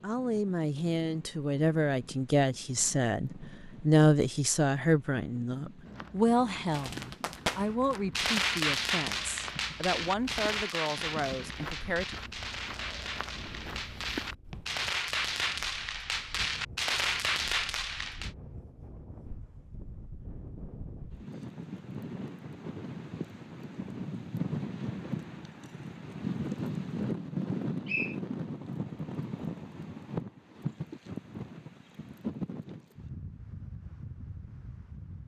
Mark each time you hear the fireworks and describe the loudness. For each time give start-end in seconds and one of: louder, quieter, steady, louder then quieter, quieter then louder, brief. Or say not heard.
6.7-18.3 quieter then louder.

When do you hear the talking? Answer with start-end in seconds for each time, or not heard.
0.0-12.2.